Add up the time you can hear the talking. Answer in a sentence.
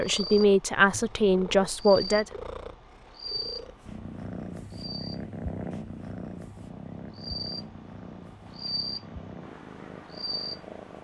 You can hear the talking for 2 seconds altogether.